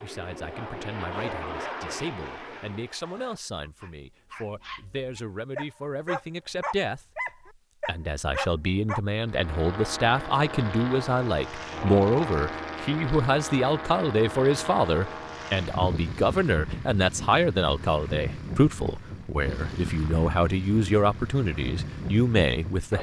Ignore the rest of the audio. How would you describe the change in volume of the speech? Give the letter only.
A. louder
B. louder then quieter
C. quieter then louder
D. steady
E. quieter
A.